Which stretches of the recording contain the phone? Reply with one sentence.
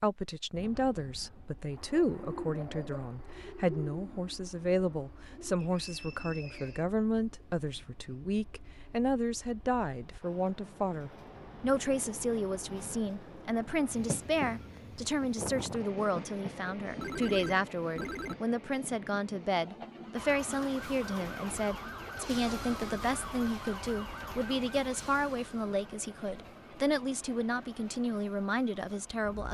You can hear the phone from 17.0 to 18.4 s.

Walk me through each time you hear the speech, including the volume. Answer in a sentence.
The speech can be heard from 0.0 to 29.4 s, at a steady volume.